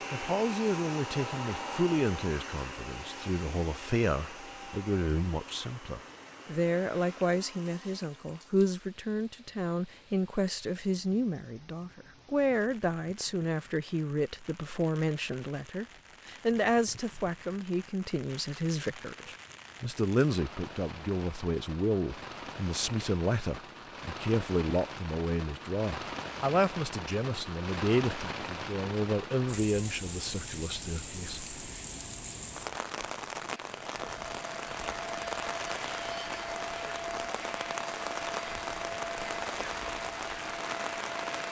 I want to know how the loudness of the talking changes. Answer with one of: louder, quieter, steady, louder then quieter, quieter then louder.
steady.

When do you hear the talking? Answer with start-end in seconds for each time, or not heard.
0.1-31.4.